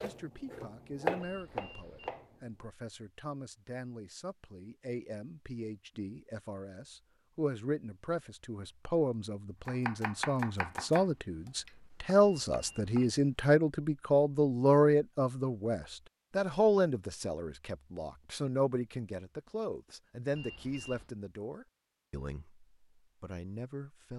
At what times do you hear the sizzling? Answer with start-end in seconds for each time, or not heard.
not heard.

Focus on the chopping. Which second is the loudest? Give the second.
1 s.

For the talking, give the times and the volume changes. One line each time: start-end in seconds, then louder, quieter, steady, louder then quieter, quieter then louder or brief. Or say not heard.
0.0-24.1 louder then quieter.